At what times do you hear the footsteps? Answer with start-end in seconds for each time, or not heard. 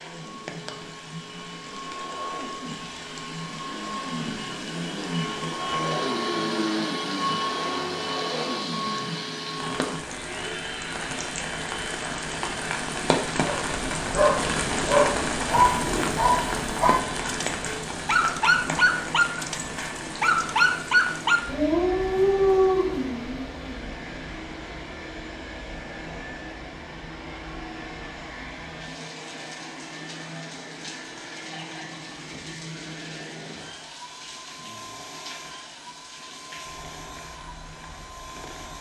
not heard.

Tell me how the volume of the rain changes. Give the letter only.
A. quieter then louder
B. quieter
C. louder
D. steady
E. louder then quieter
E.